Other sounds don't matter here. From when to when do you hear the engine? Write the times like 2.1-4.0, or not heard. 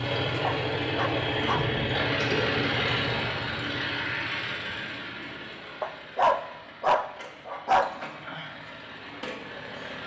0.0-10.0.